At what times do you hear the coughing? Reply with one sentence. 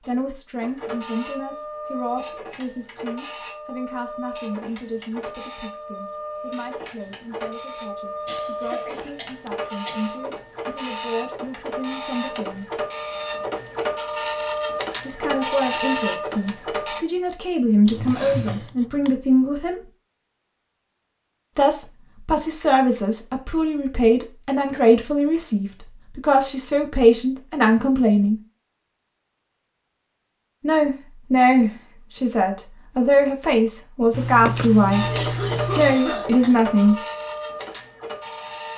You can hear the coughing from 8.2 to 10.1 s, from 17.9 to 18.7 s and from 35.0 to 36.5 s.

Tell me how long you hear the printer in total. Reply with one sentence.
You can hear the printer for 21 seconds altogether.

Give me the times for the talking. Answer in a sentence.
The talking can be heard from 0.1 to 12.8 s, from 15.1 to 19.8 s, from 21.6 to 28.4 s and from 30.6 to 37.0 s.